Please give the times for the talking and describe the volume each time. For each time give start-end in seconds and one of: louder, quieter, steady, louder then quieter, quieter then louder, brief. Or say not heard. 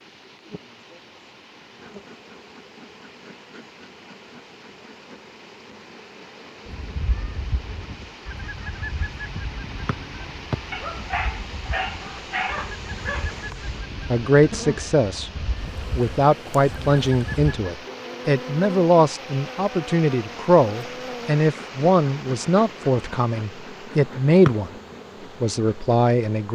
14.1-15.3 brief
15.9-24.7 steady
25.4-26.5 brief.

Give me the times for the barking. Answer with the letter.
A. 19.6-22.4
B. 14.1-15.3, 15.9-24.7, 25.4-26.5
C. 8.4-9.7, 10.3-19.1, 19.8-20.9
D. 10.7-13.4
D.